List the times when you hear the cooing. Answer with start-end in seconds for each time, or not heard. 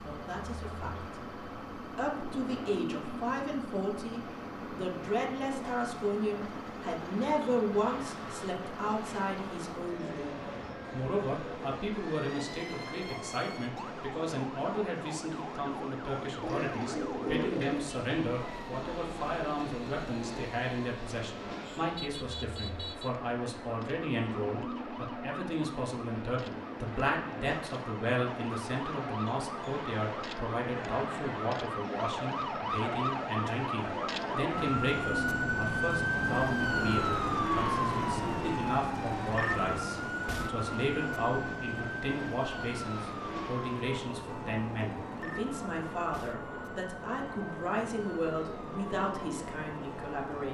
16.4-17.9.